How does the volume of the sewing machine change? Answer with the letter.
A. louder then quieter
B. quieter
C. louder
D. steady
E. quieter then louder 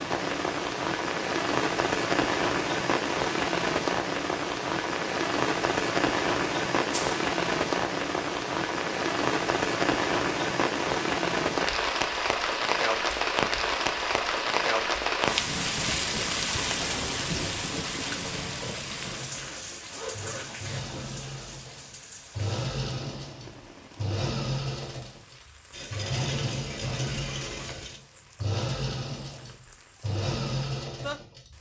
C.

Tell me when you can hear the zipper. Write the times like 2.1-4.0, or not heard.
19.0-20.8.